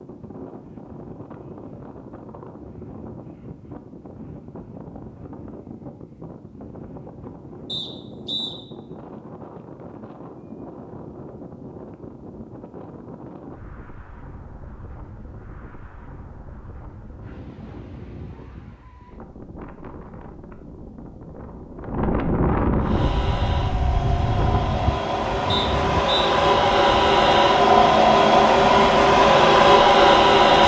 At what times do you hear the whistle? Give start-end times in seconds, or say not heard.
7.7-8.6, 25.4-26.3.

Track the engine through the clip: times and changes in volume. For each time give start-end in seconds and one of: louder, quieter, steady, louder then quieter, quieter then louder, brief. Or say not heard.
22.8-30.6 louder.